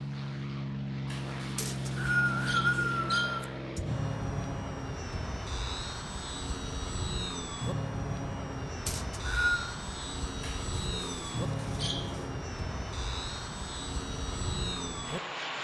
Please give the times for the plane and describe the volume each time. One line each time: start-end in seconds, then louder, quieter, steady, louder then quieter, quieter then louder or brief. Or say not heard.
0.0-15.6 steady.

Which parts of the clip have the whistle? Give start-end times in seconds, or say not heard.
1.6-3.5, 8.8-9.7.